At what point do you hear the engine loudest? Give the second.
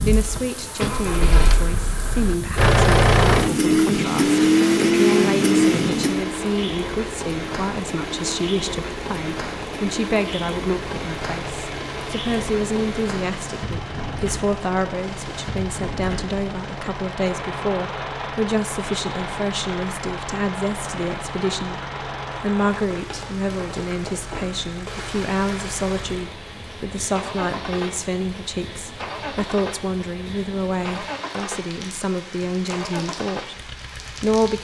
5 s.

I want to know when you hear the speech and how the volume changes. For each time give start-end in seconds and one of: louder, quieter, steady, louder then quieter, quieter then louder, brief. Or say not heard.
0.0-34.5 steady.